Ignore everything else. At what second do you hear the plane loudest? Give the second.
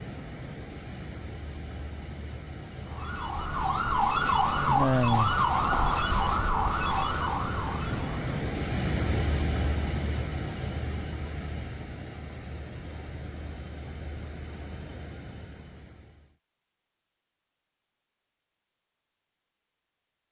9 s.